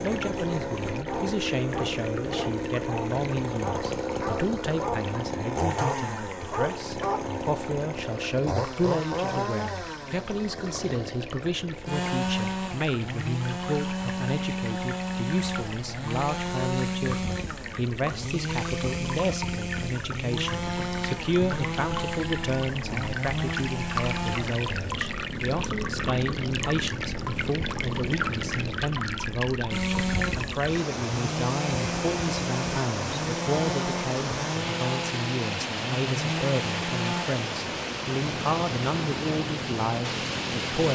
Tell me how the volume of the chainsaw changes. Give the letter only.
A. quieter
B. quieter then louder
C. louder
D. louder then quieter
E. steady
E.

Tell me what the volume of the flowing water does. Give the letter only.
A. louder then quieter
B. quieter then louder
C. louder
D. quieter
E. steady
C.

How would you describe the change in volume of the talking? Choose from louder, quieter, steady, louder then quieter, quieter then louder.
steady.